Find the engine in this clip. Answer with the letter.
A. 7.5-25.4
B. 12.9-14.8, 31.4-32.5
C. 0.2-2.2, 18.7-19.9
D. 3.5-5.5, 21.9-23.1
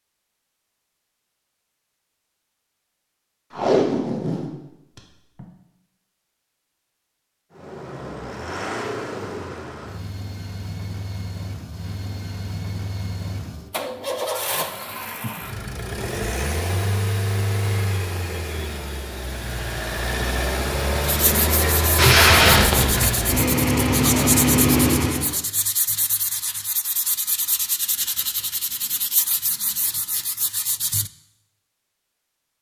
A.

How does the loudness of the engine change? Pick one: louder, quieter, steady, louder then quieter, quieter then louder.
louder.